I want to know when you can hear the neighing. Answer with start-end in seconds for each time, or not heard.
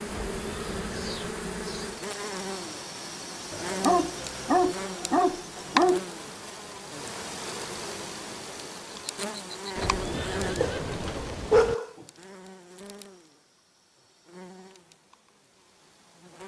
0.1-1.4, 9.8-11.8.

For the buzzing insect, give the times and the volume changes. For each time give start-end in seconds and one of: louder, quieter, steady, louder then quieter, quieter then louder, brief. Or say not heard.
0.0-16.4 quieter.